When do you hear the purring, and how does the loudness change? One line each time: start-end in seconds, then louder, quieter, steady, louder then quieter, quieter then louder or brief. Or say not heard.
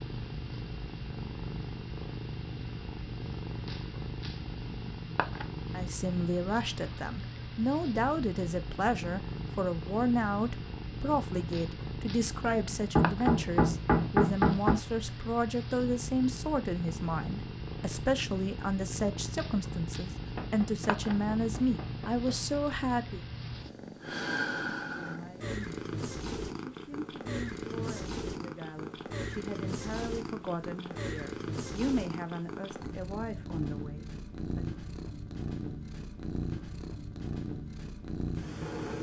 0.0-38.9 steady.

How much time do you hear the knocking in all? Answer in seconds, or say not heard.
4 s.